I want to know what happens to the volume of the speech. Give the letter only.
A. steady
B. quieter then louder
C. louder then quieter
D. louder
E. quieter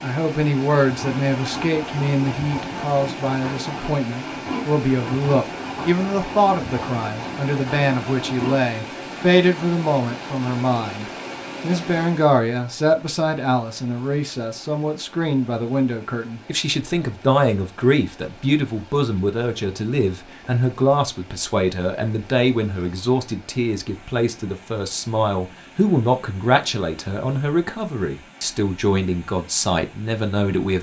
A.